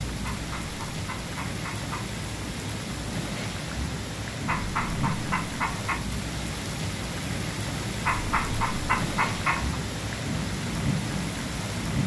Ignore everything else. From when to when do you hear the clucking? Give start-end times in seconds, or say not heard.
0.2-2.1, 4.5-6.0, 8.1-9.8.